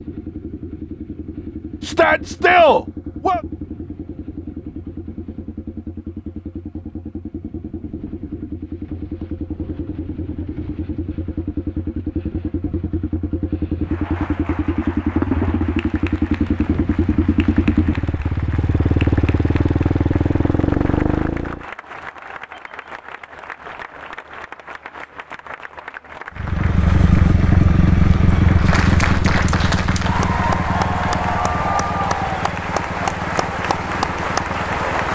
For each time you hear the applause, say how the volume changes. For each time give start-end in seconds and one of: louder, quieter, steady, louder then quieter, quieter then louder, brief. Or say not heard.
13.8-35.1 louder.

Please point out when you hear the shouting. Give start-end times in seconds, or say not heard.
1.8-3.4.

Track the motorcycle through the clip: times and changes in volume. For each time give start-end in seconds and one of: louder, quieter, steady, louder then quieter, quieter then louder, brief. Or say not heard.
0.0-21.6 louder
26.4-35.1 quieter.